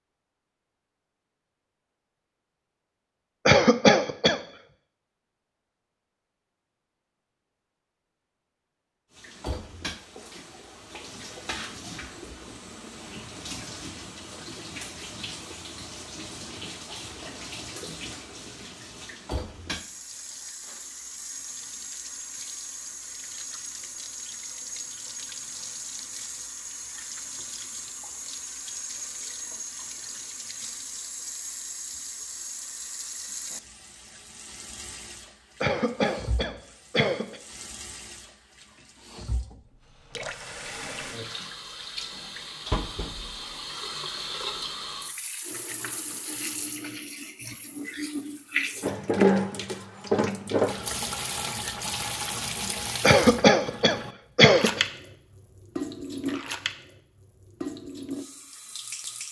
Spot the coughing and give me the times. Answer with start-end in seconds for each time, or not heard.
3.5-4.4, 35.6-37.4, 53.0-54.8.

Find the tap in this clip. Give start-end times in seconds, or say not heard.
9.1-59.2.